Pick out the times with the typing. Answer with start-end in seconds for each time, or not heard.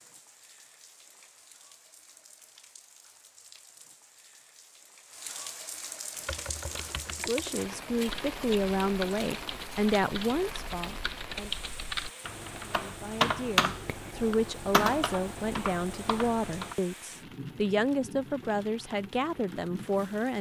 6.2-16.8.